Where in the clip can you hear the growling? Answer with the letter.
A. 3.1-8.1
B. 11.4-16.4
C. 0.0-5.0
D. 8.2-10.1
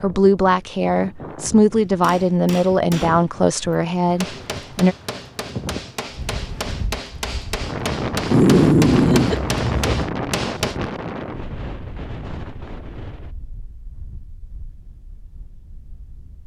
D.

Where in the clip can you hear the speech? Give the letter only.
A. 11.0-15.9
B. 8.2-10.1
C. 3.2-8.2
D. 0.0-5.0
D.